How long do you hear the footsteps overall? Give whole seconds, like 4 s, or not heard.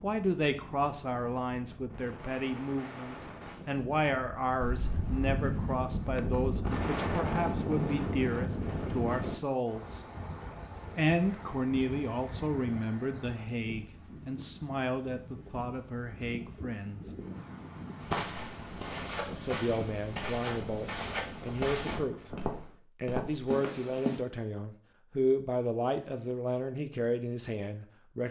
6 s.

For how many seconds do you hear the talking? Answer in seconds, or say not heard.
25 s.